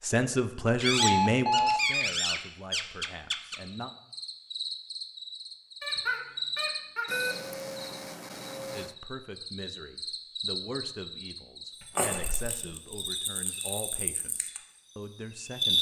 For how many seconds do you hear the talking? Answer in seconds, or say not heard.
11 s.